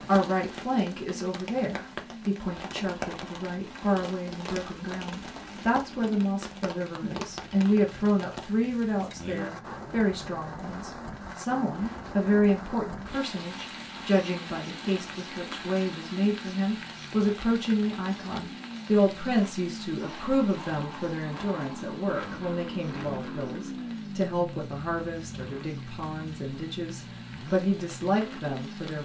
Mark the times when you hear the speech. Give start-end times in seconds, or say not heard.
0.1-28.9.